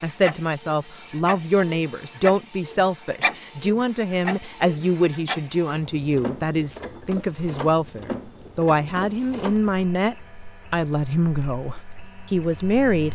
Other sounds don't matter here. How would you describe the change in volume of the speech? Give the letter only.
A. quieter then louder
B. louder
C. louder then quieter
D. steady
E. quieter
D.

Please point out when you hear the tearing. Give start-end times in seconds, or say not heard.
not heard.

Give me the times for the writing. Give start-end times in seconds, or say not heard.
not heard.